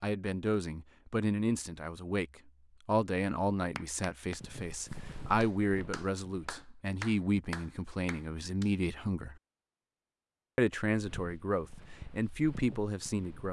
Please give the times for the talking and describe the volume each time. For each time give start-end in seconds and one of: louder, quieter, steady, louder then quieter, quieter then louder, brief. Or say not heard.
0.0-2.2 brief
2.9-9.3 steady
10.6-13.4 brief.